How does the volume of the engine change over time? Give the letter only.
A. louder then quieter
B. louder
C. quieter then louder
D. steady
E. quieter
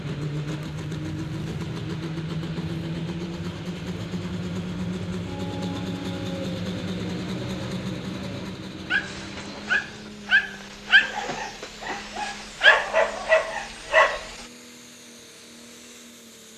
E.